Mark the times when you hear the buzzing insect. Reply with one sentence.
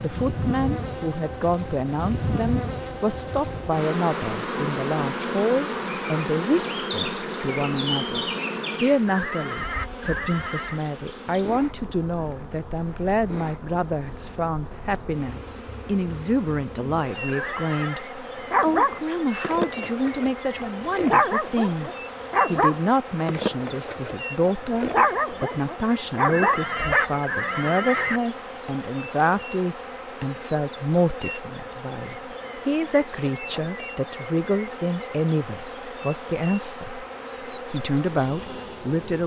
The buzzing insect can be heard from 0.0 to 39.2 s.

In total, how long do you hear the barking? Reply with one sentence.
You can hear the barking for 9 seconds altogether.